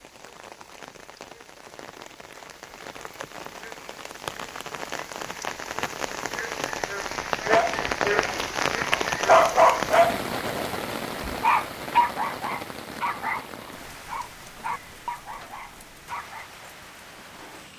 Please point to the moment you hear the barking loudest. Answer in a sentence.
The loudest moment of the barking is at 9 seconds.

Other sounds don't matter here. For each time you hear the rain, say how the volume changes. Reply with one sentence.
You can hear the rain from 0.0 to 17.7 s, getting louder then quieter.